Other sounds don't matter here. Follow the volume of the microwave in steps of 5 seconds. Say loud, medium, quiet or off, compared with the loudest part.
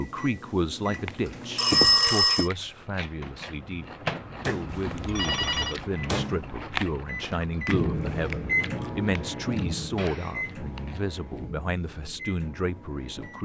medium, loud, medium.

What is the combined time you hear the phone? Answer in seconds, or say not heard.
3 s.